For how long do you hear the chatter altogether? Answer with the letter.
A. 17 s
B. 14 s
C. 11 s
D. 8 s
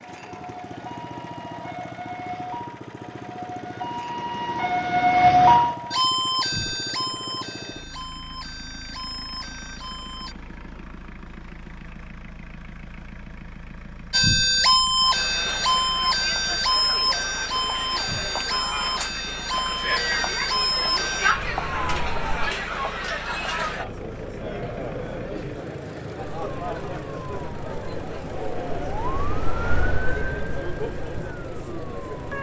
A.